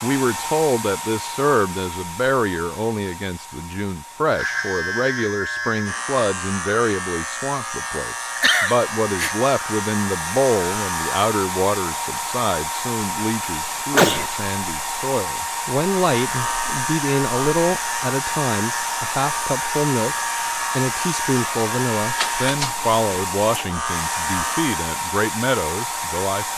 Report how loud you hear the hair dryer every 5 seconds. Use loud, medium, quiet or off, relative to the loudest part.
medium, medium, loud, loud, loud, loud.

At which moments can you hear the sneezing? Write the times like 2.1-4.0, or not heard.
8.3-9.3, 13.9-14.3.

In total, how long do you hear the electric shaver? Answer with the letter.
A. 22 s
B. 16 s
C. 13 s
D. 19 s
B.